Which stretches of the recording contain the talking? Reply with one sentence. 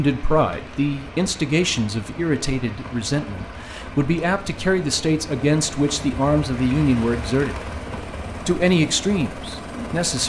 The talking can be heard from 0.0 to 7.7 s and from 8.4 to 10.2 s.